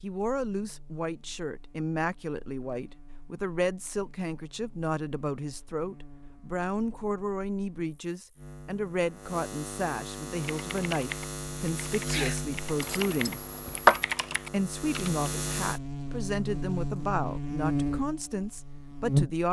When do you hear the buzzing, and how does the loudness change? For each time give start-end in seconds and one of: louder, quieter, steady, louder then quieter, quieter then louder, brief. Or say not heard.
0.1-19.4 louder.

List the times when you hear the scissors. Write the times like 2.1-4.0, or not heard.
12.8-14.1.